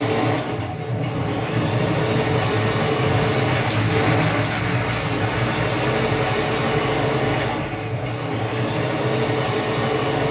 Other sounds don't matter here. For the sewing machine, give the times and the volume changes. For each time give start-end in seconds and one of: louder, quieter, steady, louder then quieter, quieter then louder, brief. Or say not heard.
0.0-10.2 steady.